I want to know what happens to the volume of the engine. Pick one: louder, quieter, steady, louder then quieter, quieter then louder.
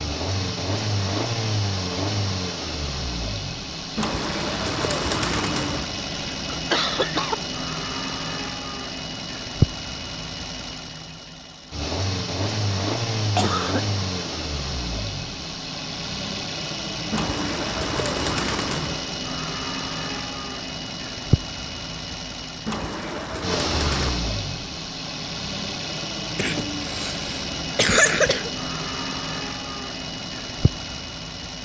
steady.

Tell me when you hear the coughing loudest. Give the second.
28 s.